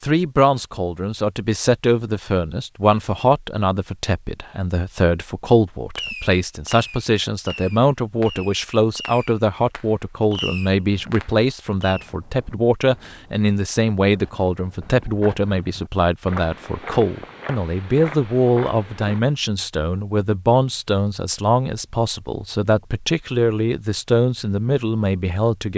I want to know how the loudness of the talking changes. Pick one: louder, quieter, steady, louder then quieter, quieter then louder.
steady.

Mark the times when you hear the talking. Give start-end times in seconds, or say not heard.
0.0-25.7.